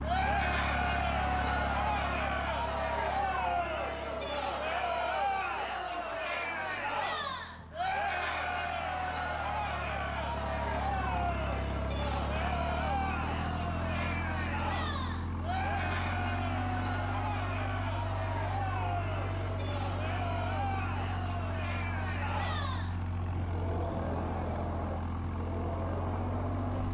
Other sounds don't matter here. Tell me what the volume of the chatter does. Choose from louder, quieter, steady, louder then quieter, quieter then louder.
quieter.